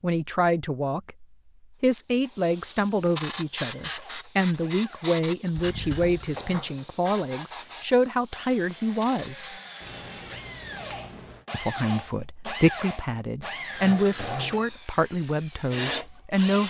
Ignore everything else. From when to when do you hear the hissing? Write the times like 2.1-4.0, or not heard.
1.8-9.7.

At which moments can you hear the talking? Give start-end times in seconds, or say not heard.
0.0-9.5, 11.5-16.6.